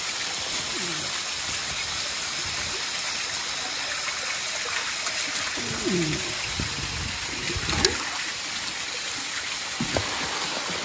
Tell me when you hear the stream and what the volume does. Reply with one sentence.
The stream can be heard from 0.0 to 10.8 s, at a steady volume.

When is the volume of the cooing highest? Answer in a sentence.
The volume of the cooing peaks at 6 seconds.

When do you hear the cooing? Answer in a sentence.
The cooing can be heard from 0.5 to 2.9 s and from 5.5 to 8.1 s.